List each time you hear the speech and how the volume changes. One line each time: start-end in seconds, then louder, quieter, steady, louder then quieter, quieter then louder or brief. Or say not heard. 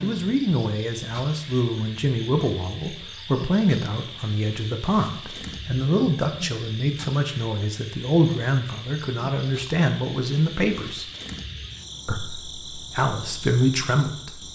0.0-11.1 steady
12.1-14.4 brief.